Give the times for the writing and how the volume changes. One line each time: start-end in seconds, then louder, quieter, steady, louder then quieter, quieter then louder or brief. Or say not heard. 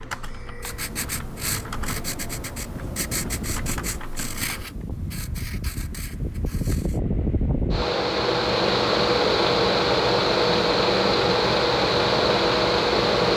0.6-7.0 quieter.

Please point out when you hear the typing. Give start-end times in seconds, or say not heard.
0.0-4.6.